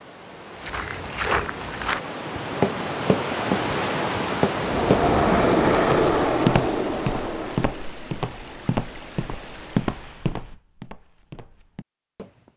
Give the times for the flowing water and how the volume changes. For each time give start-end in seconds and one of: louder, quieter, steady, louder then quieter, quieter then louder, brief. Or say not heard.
0.0-10.6 louder then quieter.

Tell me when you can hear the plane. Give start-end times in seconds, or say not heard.
4.5-8.0.